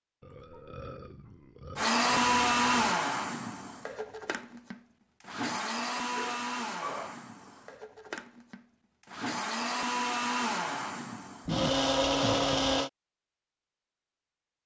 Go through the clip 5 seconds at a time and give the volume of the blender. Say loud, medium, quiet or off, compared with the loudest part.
loud, medium, loud.